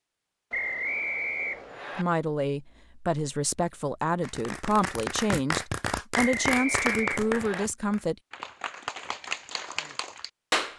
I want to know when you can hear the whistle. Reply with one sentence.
The whistle can be heard from 0.5 to 2.0 s and from 6.1 to 7.7 s.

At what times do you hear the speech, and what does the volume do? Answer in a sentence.
You can hear the speech from 1.9 to 8.2 s, at a steady volume.